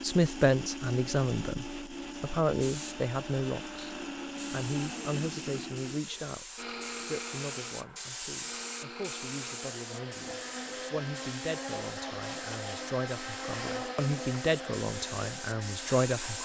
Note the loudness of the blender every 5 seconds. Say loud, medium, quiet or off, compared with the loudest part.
loud, loud, loud, medium.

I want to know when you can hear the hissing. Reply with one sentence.
You can hear the hissing from 2.6 to 16.4 s.